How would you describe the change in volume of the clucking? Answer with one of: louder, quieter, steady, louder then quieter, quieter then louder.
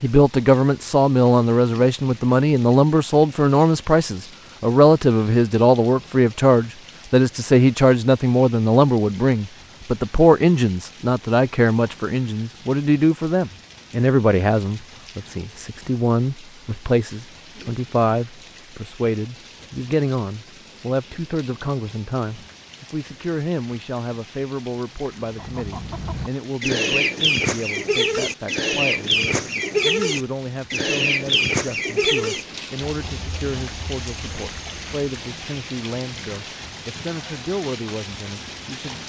quieter.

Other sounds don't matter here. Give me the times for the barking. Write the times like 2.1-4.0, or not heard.
not heard.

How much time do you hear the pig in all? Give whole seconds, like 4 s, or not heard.
not heard.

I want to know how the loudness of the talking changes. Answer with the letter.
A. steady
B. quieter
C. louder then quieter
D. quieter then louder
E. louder
B.